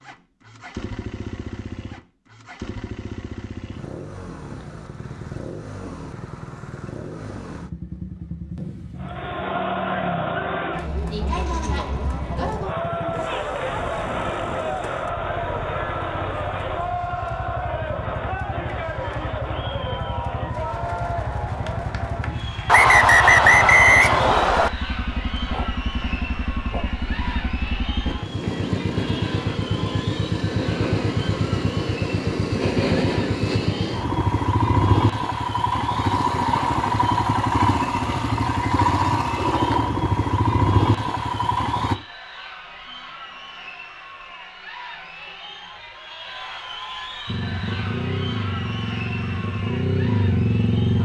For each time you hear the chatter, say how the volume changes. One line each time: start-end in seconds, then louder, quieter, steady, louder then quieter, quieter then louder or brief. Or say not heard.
8.9-51.0 quieter.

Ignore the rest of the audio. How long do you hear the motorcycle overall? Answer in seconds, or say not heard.
46 s.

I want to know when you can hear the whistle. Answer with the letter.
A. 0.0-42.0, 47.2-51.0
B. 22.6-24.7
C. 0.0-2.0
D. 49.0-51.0
B.